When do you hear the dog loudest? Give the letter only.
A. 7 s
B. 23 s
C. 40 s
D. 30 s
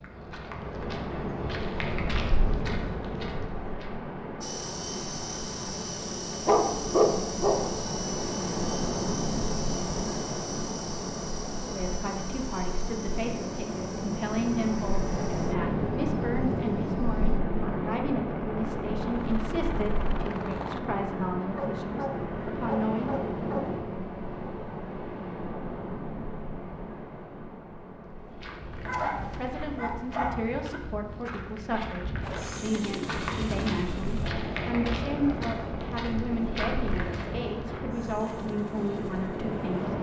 A.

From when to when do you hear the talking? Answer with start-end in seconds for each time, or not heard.
11.6-23.1, 29.0-39.9.